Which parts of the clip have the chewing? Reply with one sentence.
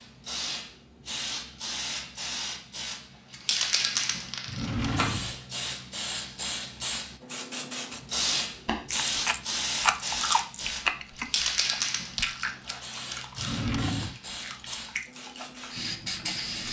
The chewing can be heard from 8.9 to 16.5 s.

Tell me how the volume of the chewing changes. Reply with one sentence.
The loudness of the chewing goes down.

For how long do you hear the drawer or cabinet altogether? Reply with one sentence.
The drawer or cabinet can be heard for 2 seconds in total.